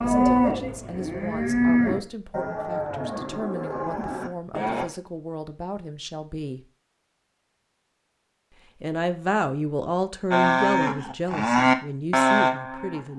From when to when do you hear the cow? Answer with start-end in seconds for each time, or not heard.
0.0-4.8, 10.3-13.1.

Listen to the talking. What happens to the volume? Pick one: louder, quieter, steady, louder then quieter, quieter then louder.
louder then quieter.